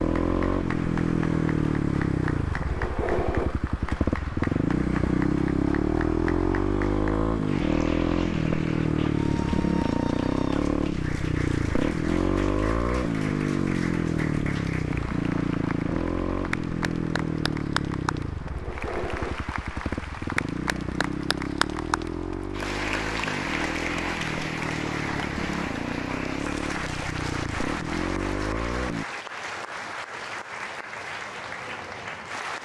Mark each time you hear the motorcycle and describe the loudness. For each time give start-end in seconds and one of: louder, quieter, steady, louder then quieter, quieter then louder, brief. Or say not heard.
0.0-29.1 quieter.